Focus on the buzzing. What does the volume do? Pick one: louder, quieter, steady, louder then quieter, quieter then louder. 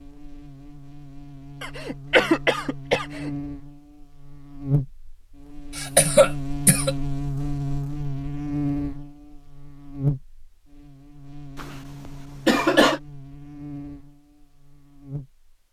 louder then quieter.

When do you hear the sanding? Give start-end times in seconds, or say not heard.
not heard.